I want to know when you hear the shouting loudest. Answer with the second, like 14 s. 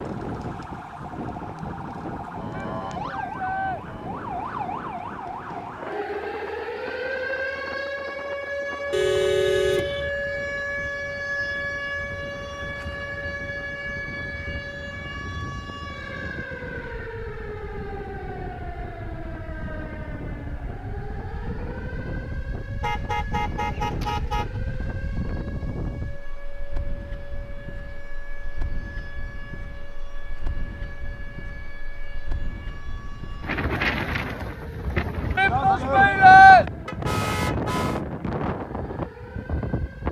36 s.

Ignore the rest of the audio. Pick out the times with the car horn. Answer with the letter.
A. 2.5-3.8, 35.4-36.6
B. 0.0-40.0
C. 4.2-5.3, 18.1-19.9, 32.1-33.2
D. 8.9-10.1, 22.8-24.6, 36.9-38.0
D.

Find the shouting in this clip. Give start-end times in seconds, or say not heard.
2.5-3.8, 35.4-36.6.